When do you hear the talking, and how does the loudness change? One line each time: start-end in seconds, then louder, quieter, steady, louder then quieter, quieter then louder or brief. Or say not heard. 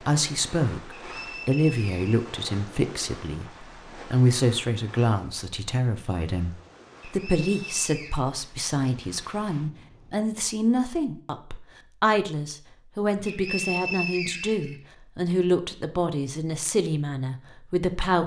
0.1-18.2 steady.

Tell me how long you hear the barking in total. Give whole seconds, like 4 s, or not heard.
not heard.